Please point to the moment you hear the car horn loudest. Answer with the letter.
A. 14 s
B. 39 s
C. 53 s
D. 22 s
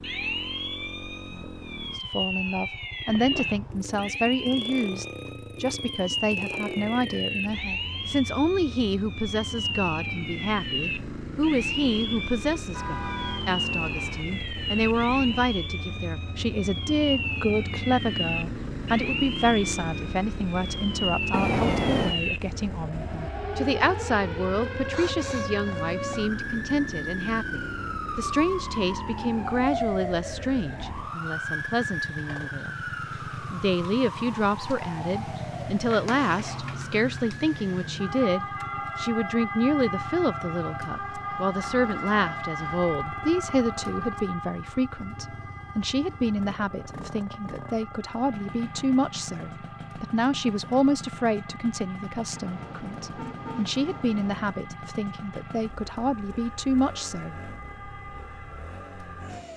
D.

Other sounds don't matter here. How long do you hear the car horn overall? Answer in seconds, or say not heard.
5 s.